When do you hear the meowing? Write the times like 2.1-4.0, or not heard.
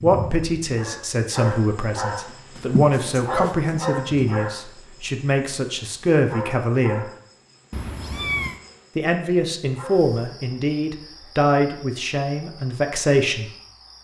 2.5-4.5, 7.7-8.6.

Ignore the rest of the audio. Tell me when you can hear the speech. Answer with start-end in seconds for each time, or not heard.
0.0-7.0, 8.9-13.5.